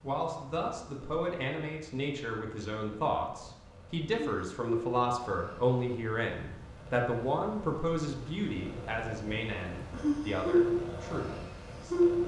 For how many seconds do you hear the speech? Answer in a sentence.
The speech can be heard for 12 seconds in total.